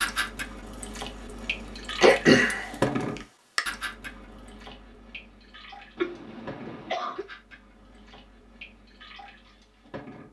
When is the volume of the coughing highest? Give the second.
2 s.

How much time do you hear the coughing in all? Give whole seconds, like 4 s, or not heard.
3 s.